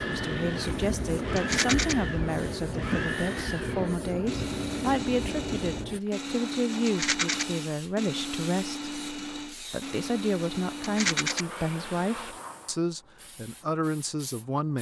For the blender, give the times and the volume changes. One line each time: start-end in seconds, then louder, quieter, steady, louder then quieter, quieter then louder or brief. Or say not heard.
0.0-12.3 steady.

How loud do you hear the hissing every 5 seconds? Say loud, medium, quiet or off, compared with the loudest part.
loud, medium, quiet.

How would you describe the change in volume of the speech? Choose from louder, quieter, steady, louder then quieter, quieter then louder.
steady.